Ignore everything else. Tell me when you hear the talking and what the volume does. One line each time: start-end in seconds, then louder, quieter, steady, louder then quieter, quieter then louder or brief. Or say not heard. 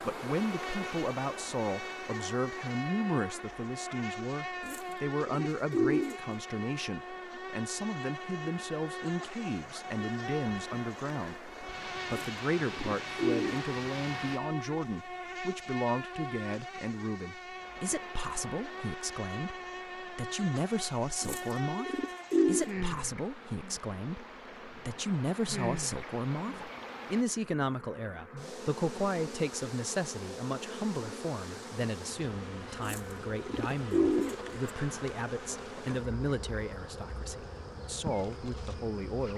0.0-39.3 steady.